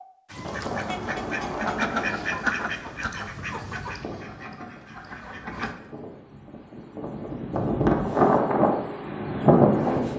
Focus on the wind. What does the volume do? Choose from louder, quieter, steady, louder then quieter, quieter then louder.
quieter then louder.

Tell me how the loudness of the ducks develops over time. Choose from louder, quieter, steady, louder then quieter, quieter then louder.
louder then quieter.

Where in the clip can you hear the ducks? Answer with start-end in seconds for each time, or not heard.
0.3-5.8.